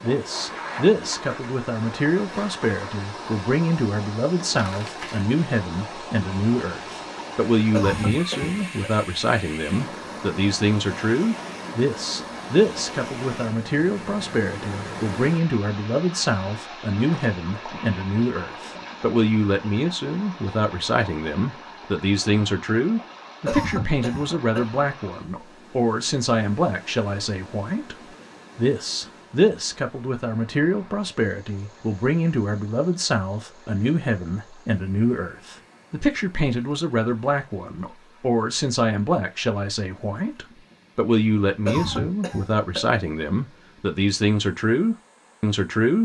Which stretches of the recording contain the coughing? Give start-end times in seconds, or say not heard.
7.7-8.9, 23.4-24.8, 41.6-42.9.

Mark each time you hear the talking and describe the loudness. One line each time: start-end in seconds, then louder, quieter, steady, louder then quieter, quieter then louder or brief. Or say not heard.
0.0-45.9 steady.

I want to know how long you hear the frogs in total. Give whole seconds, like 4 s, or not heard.
not heard.